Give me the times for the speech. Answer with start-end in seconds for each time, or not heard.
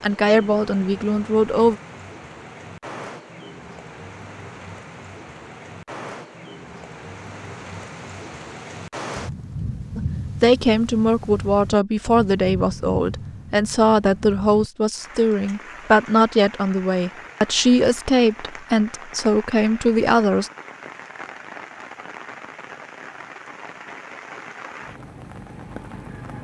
0.0-1.8, 9.9-20.5.